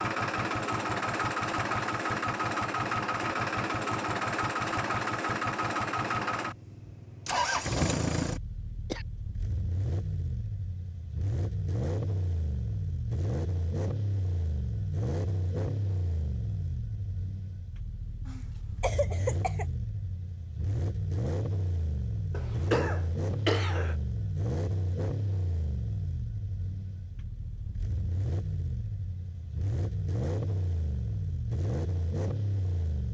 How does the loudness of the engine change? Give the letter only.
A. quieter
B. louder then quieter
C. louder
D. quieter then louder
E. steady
A.